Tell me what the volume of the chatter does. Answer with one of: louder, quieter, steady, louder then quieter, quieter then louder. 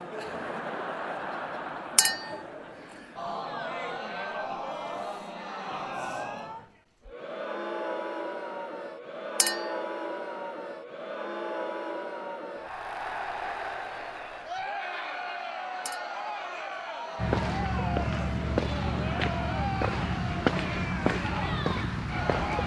steady.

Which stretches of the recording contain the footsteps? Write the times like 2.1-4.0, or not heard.
17.1-22.6.